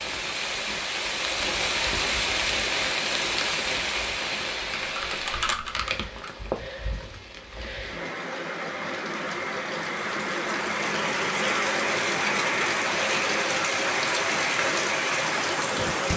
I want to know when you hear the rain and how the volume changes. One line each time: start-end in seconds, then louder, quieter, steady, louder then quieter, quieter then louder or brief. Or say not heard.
0.0-16.1 quieter then louder.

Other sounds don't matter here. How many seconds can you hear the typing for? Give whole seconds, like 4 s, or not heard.
2 s.